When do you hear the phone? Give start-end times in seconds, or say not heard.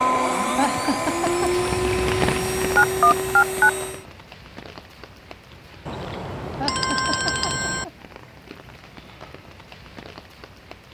2.8-3.7, 5.8-7.8.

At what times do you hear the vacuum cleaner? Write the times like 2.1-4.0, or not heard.
0.0-4.0.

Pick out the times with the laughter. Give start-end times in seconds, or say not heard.
0.6-1.6, 6.6-7.9.